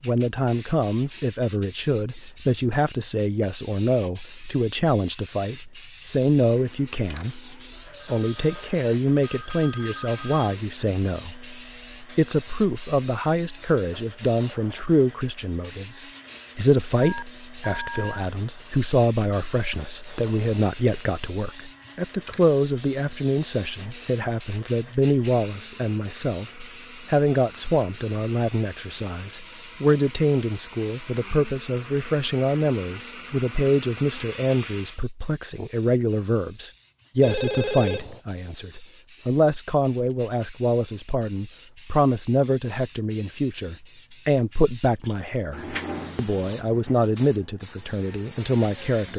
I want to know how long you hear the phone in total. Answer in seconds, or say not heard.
5 s.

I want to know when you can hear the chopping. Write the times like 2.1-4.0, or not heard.
not heard.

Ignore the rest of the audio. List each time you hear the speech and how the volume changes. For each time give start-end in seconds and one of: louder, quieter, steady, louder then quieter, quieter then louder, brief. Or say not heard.
0.0-49.1 steady.